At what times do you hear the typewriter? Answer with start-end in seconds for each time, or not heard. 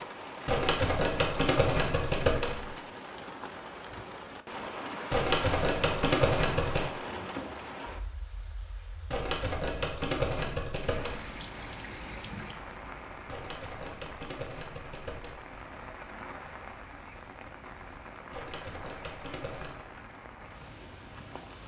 0.5-2.8, 5.1-6.9, 9.1-11.3, 13.2-15.6, 18.3-19.9.